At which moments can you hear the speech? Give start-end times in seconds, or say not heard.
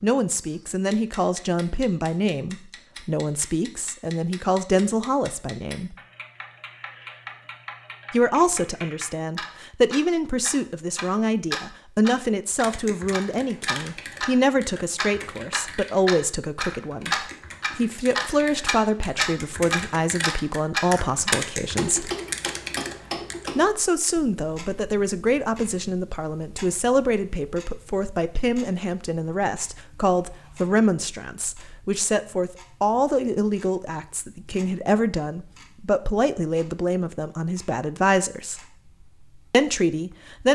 0.0-6.0, 8.1-22.1, 23.6-38.6, 39.5-40.5.